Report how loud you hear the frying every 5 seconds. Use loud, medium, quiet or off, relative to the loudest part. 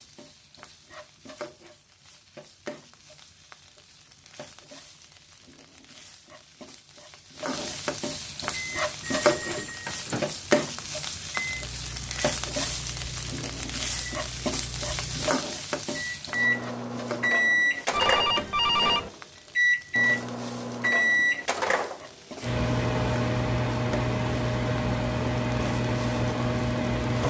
quiet, loud, loud, medium, quiet, quiet.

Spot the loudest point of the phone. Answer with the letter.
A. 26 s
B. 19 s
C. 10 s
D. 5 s
B.